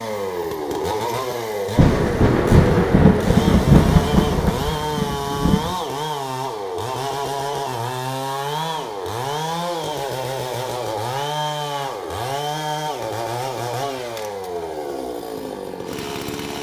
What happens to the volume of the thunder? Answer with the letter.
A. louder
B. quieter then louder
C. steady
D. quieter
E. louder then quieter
D.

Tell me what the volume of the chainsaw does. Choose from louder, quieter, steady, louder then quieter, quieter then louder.
steady.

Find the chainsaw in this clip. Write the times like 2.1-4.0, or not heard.
0.0-16.5.